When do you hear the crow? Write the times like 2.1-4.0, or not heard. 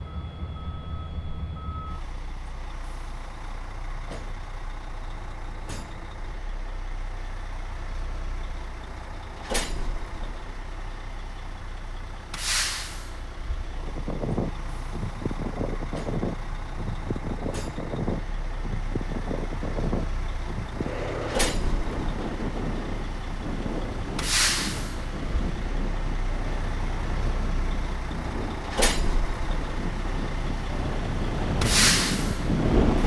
not heard.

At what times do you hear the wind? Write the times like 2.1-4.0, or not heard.
13.8-33.0.